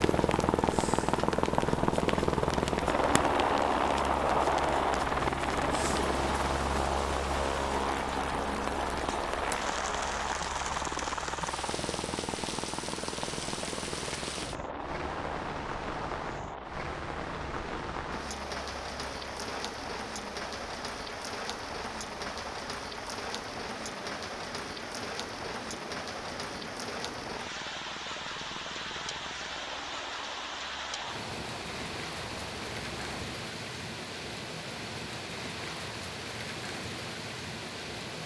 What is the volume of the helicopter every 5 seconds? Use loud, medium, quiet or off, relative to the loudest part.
loud, loud, medium, quiet, quiet, quiet, quiet, off.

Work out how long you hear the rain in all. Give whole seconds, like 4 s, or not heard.
38 s.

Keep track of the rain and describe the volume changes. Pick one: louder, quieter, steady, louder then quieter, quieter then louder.
steady.